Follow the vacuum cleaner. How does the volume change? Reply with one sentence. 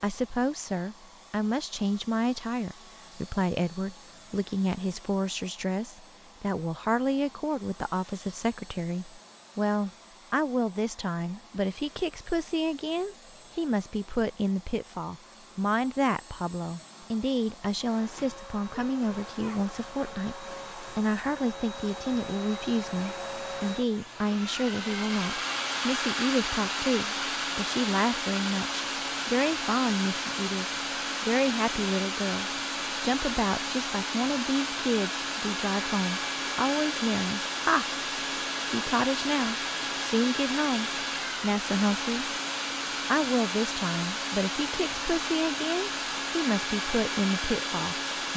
The volume of the vacuum cleaner goes up.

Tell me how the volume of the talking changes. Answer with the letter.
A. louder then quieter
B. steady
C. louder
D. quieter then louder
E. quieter
B.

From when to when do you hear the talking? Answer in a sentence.
You can hear the talking from 0.0 to 37.9 s, from 38.6 to 42.3 s and from 43.0 to 48.3 s.